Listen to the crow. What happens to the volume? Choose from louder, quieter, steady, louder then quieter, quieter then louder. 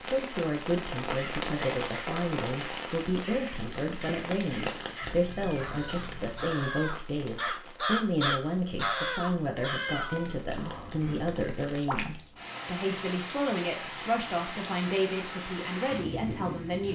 louder.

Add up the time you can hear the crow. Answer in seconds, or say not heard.
9 s.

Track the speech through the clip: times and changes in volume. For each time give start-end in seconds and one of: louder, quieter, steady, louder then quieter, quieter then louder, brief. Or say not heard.
0.0-16.9 steady.